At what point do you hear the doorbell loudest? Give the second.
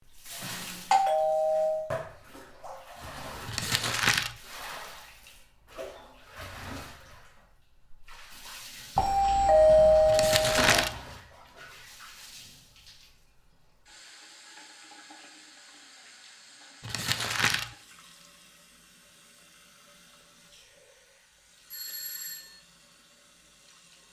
10 s.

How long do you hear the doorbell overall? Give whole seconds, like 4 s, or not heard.
4 s.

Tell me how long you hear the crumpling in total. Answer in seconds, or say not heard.
3 s.